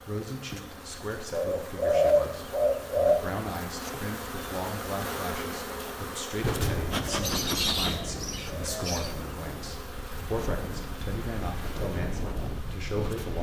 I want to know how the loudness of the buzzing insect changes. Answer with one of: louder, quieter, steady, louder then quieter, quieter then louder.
louder then quieter.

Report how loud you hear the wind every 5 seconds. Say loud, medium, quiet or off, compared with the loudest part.
off, loud, loud.